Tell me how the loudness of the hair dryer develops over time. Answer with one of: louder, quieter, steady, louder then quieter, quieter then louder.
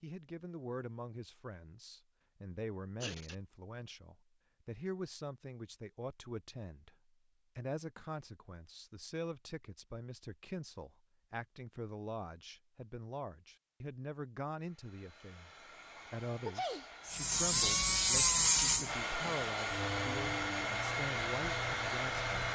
louder.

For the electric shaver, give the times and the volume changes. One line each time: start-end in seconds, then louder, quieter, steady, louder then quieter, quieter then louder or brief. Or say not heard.
17.1-22.4 quieter.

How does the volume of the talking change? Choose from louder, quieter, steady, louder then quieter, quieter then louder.
steady.